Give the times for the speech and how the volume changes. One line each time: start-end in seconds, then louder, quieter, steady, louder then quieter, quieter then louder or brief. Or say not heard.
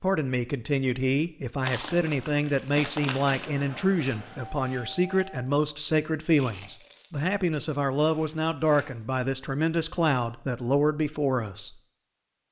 0.0-11.8 steady.